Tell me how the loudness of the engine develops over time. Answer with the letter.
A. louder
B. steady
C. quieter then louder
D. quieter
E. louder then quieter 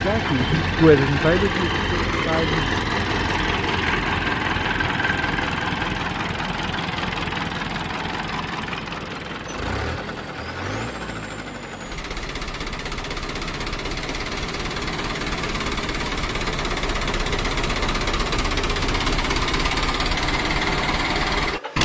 C.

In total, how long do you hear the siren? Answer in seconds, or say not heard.
not heard.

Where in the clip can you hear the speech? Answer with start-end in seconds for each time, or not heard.
0.0-2.8.